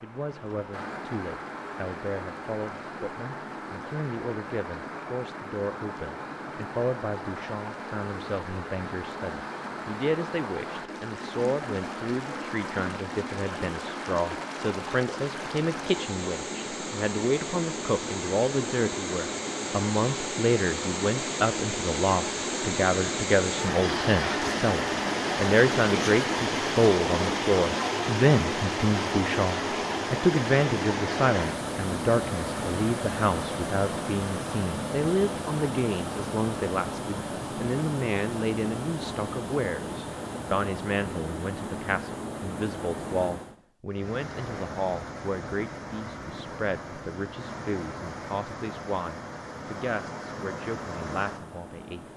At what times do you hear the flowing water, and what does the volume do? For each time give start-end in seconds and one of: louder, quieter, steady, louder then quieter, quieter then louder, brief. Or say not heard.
0.0-52.1 louder then quieter.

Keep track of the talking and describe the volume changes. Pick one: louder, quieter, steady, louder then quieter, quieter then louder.
louder then quieter.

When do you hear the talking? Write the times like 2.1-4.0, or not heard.
0.0-52.1.